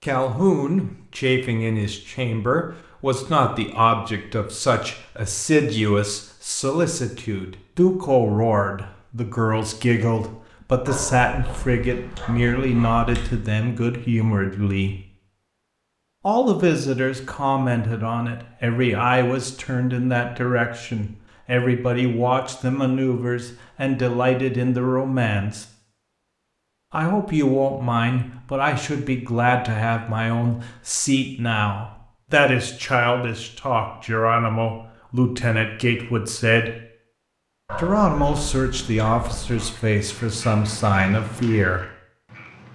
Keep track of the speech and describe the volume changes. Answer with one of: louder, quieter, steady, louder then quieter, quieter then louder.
steady.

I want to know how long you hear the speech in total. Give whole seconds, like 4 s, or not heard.
38 s.